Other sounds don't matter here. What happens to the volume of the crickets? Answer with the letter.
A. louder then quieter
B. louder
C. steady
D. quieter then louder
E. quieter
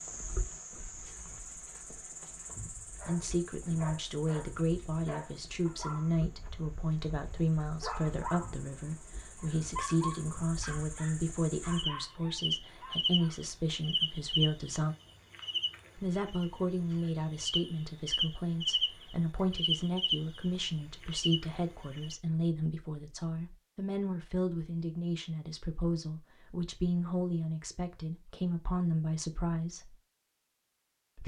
D.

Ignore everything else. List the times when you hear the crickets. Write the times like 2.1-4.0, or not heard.
0.0-22.1.